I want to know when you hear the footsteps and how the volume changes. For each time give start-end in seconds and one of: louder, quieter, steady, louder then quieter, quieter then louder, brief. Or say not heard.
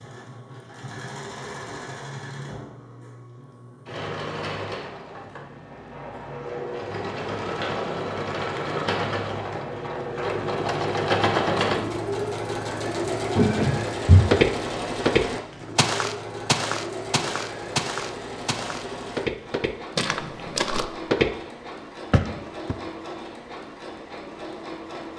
13.3-21.3 quieter
22.1-22.8 brief.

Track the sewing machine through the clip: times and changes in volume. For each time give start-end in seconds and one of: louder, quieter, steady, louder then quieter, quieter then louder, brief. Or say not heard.
0.0-25.1 louder then quieter.